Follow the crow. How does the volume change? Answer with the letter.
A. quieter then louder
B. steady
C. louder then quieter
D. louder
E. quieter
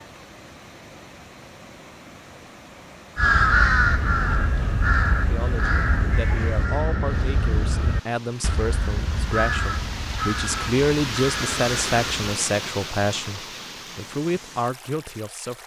E.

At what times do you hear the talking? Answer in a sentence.
The talking can be heard from 5.2 to 15.6 s.